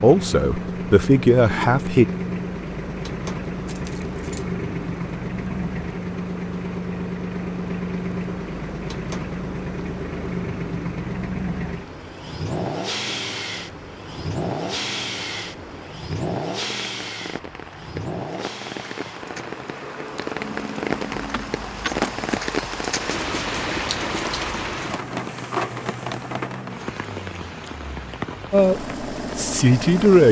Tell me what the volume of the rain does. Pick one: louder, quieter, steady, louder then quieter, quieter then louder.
louder.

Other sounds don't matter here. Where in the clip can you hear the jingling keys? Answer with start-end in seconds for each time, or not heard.
3.6-4.5, 20.4-22.4.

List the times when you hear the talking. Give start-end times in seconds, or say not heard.
0.0-2.0, 28.5-30.2.